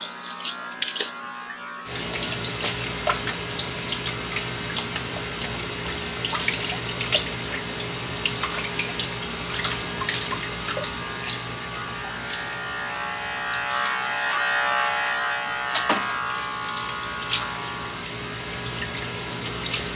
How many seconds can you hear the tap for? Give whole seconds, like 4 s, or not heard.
20 s.